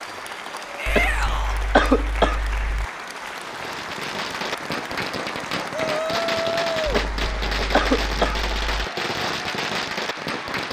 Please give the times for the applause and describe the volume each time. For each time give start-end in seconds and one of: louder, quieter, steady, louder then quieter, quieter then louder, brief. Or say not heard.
0.0-10.6 steady.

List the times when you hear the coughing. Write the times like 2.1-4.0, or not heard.
0.8-2.9, 6.8-8.8.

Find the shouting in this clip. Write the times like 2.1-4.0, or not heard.
0.8-1.6, 5.7-6.9.